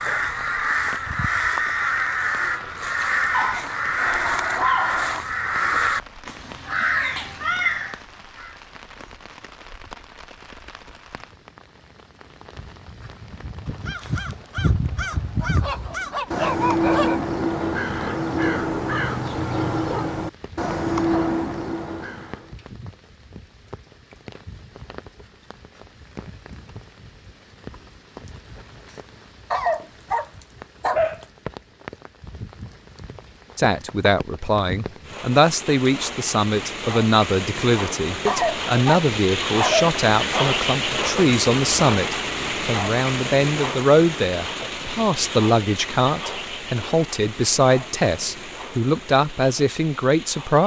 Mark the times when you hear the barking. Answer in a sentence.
The barking can be heard from 3.3 to 5.2 s, from 15.4 to 17.2 s, from 29.5 to 31.2 s and from 38.2 to 40.5 s.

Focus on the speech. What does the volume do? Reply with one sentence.
The volume of the speech stays about the same.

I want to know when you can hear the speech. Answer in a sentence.
The speech can be heard from 33.5 to 50.6 s.